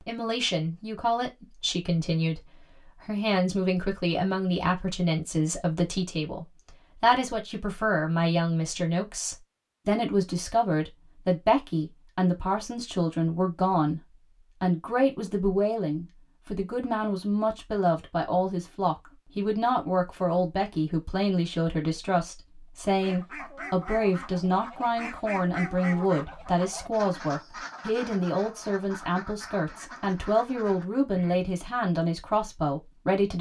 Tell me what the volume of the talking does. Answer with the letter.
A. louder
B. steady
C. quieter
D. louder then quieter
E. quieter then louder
B.